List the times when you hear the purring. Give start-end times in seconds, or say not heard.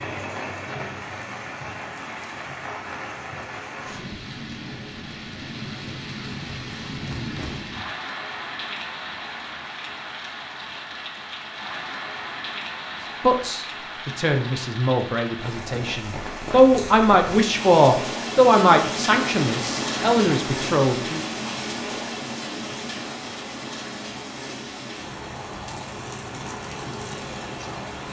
not heard.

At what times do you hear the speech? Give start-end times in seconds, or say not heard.
13.2-21.2.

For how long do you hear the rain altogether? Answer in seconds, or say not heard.
28 s.